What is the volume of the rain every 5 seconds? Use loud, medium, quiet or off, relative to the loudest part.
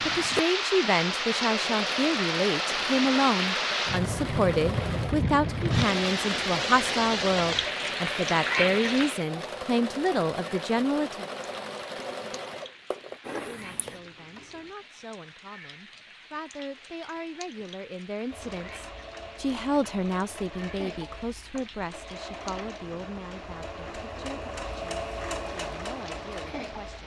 loud, loud, quiet, quiet, quiet, quiet.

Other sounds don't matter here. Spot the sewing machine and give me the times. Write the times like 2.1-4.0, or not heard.
0.0-14.7, 18.3-27.0.